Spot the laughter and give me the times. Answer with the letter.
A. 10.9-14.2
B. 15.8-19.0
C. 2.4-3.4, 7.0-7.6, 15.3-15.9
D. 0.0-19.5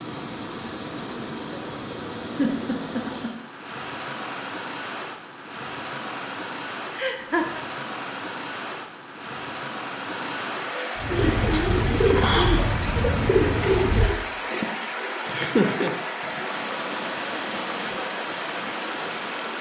C.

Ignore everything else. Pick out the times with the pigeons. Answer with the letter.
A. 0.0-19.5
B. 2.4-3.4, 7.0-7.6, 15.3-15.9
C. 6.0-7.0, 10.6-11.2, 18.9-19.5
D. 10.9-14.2
D.